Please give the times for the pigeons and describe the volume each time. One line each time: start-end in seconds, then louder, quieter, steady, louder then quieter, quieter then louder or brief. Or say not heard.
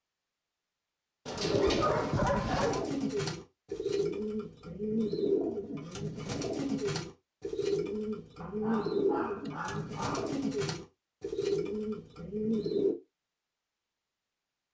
1.4-12.9 steady.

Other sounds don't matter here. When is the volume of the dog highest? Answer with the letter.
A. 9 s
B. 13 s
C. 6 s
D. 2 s
D.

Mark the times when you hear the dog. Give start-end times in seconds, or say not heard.
1.2-2.9, 8.4-10.3.